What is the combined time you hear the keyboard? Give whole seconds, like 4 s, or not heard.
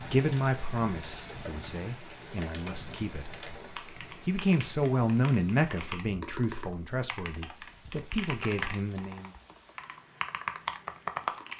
11 s.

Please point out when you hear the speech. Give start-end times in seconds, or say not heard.
0.0-3.5, 4.2-9.3.